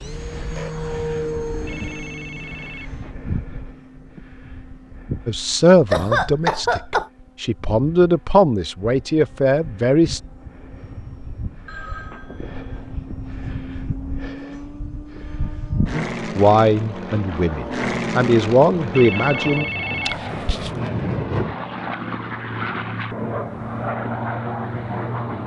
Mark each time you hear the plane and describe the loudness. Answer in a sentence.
You can hear the plane from 0.0 to 25.4 s, getting quieter then louder.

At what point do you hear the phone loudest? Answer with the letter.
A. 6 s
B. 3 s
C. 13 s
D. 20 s
D.